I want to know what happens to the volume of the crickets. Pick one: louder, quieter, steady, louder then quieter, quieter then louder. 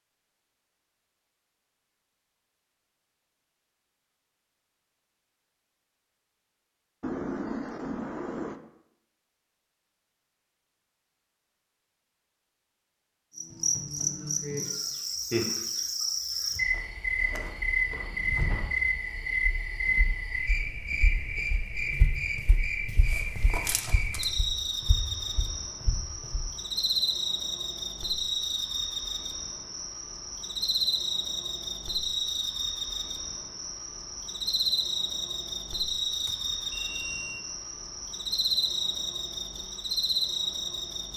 steady.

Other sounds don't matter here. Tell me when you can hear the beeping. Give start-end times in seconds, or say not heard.
7.0-8.6, 36.2-37.5.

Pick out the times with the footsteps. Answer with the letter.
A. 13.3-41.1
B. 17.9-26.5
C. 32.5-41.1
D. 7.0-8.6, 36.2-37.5
B.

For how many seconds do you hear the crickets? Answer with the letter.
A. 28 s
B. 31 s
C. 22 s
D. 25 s
A.